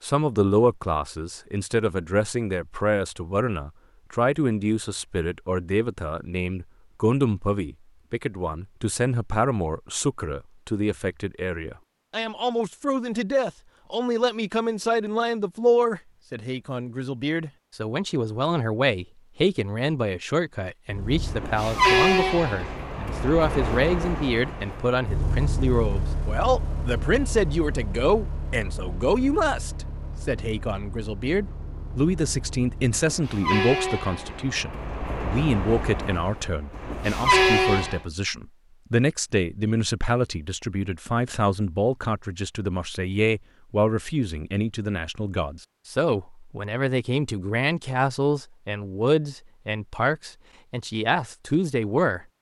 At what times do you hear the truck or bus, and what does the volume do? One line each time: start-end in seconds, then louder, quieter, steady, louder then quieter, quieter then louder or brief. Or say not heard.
20.9-38.0 quieter then louder.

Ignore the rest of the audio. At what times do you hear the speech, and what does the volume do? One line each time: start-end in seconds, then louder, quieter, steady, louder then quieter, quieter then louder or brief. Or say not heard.
0.0-52.2 steady.